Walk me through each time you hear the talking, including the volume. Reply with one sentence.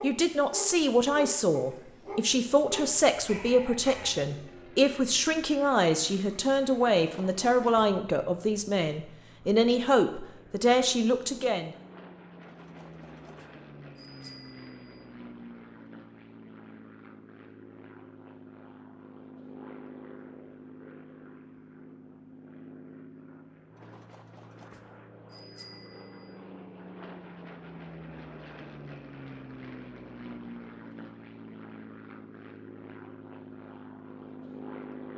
The talking can be heard from 0.0 to 11.8 s, at a steady volume.